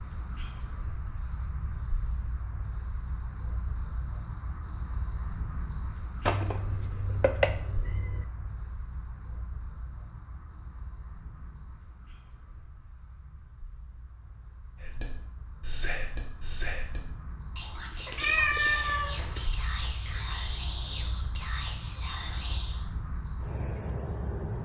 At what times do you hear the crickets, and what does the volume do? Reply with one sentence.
You can hear the crickets from 0.0 to 24.5 s, getting quieter then louder.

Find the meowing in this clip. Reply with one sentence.
You can hear the meowing from 6.2 to 8.2 s and from 18.1 to 19.4 s.